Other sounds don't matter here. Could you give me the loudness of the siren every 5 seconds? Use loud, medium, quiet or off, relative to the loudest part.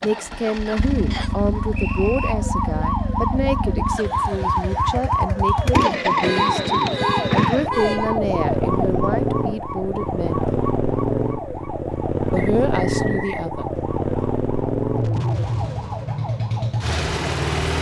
loud, loud, medium, medium.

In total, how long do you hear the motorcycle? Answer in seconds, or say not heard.
18 s.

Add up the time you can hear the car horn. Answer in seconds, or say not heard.
2 s.